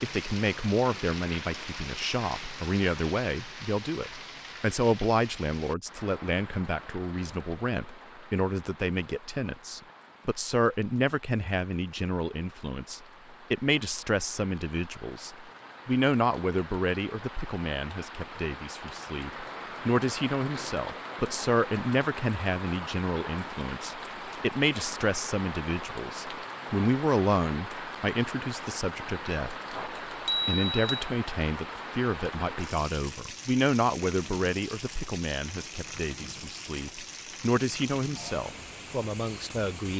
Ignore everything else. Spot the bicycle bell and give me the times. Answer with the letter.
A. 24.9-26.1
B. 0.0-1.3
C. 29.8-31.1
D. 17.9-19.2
C.